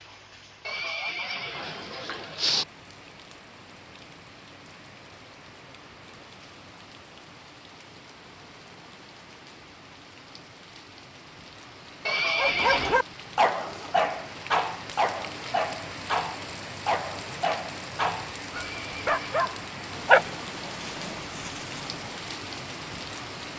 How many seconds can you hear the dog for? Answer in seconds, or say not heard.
10 s.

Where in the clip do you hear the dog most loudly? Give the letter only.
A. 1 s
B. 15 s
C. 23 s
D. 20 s
D.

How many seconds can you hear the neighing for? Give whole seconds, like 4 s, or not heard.
4 s.